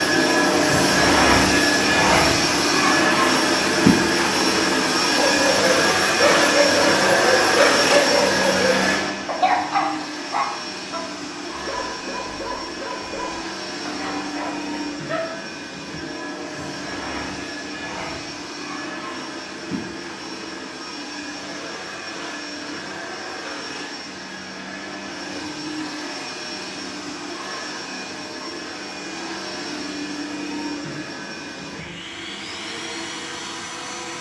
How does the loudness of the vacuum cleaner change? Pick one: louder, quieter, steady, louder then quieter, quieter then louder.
quieter.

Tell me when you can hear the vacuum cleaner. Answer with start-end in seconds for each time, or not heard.
0.0-34.1.